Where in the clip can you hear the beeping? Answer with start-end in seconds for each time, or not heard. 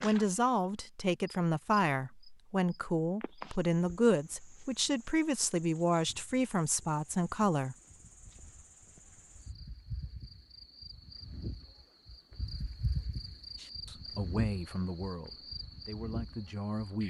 not heard.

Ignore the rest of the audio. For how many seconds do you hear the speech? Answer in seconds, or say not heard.
11 s.